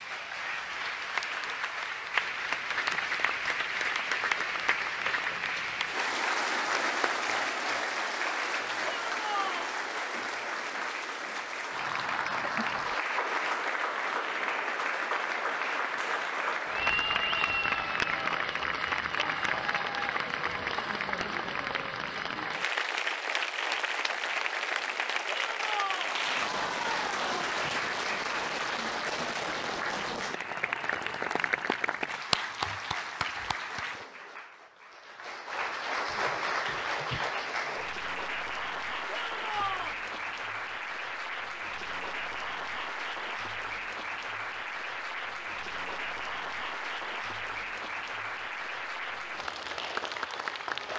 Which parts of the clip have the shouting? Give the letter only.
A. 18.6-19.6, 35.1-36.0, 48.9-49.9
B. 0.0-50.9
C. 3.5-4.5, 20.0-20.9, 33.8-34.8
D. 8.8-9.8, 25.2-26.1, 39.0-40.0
D.